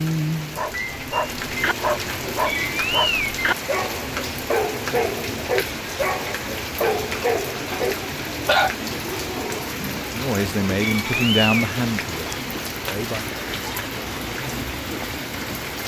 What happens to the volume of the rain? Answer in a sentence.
The volume of the rain stays about the same.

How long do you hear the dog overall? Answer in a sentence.
You can hear the dog for 9 seconds altogether.